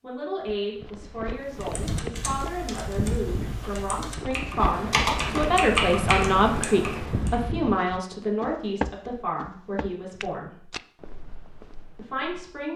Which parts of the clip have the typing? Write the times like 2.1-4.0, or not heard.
1.4-7.3.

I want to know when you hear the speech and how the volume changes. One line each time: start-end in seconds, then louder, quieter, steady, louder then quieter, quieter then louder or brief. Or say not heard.
0.0-10.7 louder then quieter
11.9-12.7 brief.